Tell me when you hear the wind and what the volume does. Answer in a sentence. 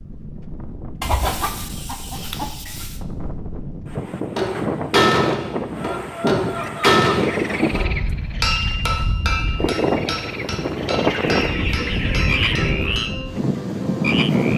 You can hear the wind from 0.0 to 14.5 s, getting louder.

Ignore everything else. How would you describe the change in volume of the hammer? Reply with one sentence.
The loudness of the hammer goes down.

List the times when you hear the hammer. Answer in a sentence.
You can hear the hammer from 4.3 to 13.2 s.